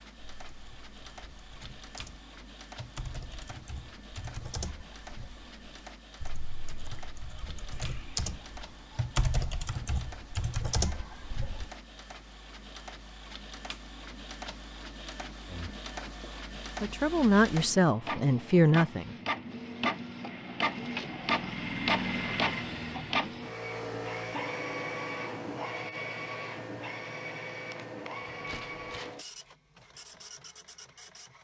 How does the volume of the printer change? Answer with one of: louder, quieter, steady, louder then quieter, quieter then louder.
louder then quieter.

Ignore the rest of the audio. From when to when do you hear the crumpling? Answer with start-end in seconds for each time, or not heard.
28.4-29.1.